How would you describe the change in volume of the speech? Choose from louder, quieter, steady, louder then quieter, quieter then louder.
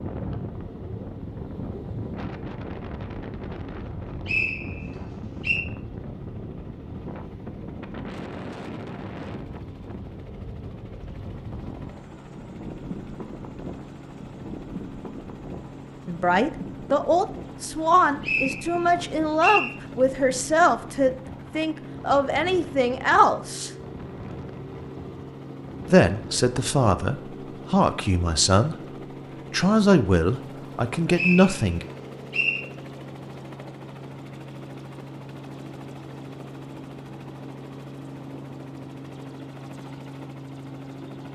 steady.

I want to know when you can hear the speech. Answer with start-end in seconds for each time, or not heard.
16.1-23.7, 25.9-31.9.